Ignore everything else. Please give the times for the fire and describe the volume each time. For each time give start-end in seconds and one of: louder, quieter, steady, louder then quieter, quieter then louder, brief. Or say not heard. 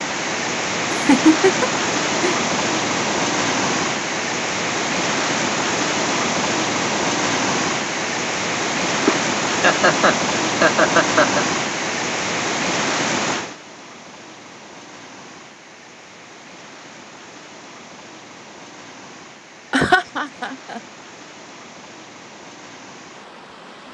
not heard.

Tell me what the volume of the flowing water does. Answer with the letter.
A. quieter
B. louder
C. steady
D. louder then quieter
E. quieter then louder
A.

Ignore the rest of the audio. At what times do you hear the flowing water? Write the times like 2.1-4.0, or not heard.
0.0-23.8.